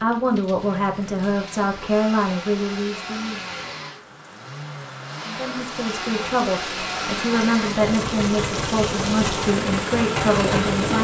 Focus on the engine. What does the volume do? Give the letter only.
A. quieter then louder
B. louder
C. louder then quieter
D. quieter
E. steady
B.